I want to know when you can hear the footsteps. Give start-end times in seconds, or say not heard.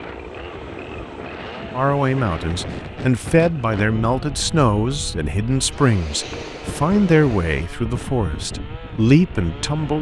not heard.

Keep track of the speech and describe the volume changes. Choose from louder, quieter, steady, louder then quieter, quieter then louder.
steady.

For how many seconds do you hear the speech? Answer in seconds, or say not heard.
8 s.